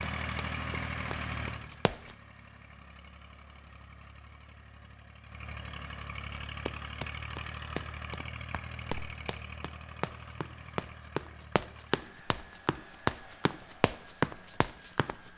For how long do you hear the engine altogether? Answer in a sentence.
You can hear the engine for 15 seconds altogether.